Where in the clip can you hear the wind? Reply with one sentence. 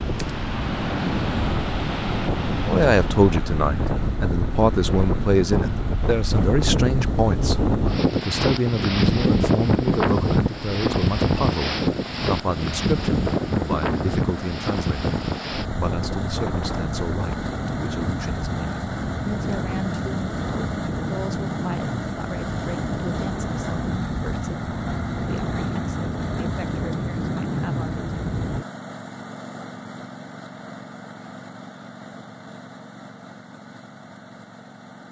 The wind can be heard from 0.0 to 28.6 s.